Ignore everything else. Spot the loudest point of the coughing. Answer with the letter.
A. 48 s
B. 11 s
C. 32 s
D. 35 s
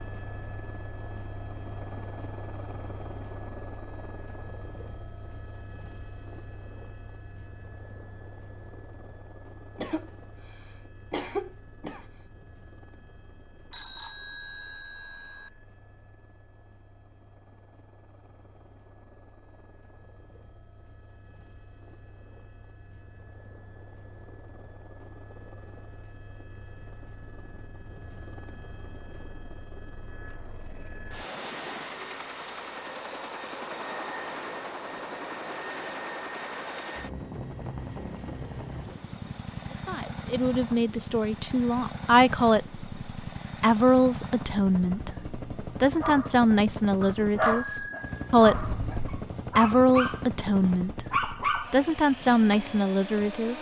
B.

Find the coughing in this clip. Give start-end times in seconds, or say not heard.
9.8-12.1.